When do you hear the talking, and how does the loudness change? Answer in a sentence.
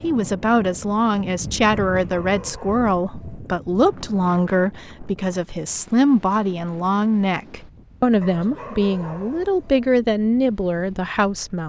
You can hear the talking from 0.0 to 11.6 s, at a steady volume.